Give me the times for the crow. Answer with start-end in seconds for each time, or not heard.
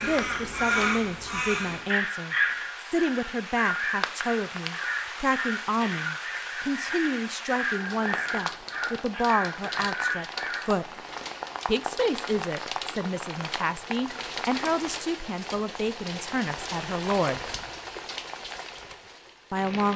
0.0-10.6.